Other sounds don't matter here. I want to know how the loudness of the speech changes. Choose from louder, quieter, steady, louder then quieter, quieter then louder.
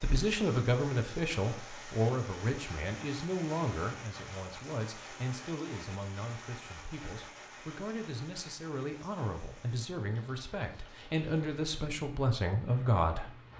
quieter then louder.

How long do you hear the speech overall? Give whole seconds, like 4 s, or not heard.
13 s.